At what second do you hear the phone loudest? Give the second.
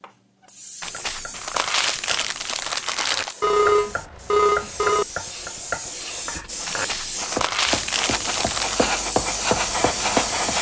4 s.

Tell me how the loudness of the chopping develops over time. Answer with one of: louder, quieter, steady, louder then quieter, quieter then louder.
louder.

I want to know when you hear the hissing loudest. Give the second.
10 s.